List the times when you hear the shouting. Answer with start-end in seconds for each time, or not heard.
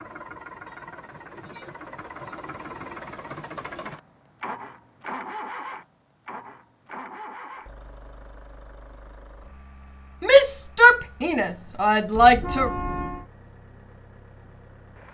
10.2-12.7.